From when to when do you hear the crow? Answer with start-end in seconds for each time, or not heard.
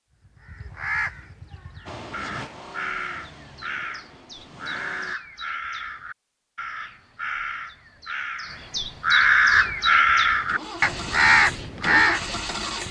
0.2-12.2.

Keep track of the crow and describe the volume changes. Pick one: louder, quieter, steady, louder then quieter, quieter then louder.
louder.